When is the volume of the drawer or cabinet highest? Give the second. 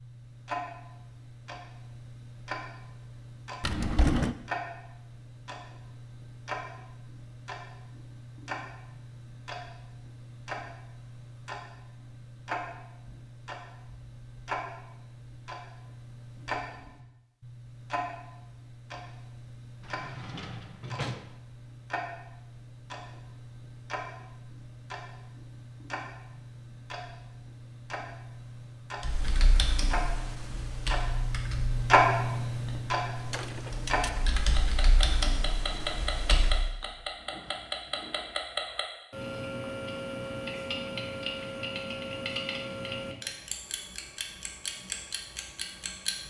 4 s.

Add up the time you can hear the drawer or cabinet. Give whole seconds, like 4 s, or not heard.
3 s.